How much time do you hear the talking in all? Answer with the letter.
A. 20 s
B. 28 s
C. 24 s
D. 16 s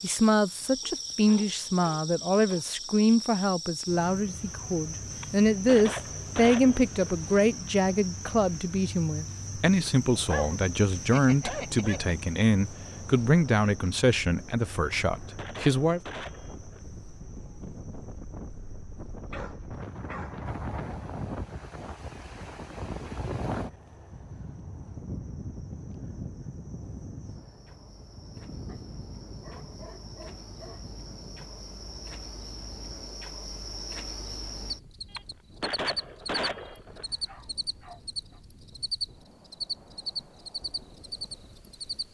D.